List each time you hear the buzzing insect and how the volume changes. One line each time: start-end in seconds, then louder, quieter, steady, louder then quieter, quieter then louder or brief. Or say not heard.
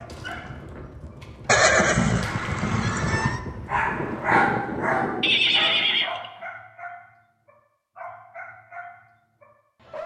not heard.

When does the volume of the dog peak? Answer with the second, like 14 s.
4 s.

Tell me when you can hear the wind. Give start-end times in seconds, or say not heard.
0.0-6.1.